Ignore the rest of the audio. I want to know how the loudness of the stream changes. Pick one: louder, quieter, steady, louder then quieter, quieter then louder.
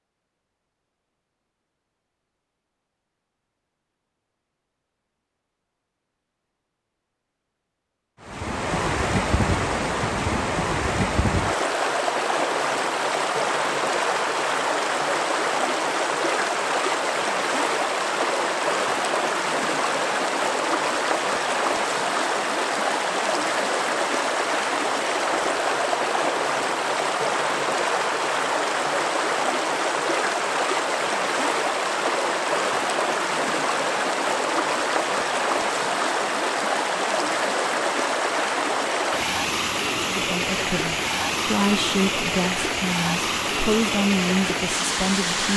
steady.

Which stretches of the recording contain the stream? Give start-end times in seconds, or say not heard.
8.2-45.5.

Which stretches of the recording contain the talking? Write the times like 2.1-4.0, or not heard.
40.1-45.5.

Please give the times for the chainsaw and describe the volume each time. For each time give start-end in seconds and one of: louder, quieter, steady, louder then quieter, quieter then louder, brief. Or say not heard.
not heard.